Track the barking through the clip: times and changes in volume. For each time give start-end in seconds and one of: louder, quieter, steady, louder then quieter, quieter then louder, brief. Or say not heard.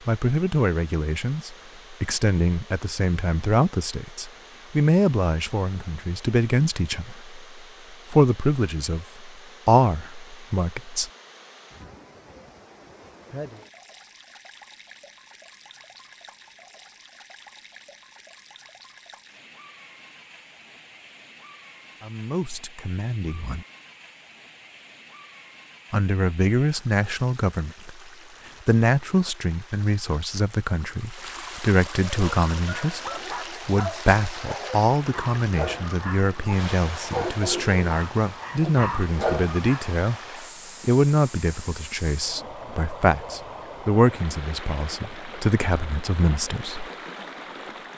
32.0-39.9 louder.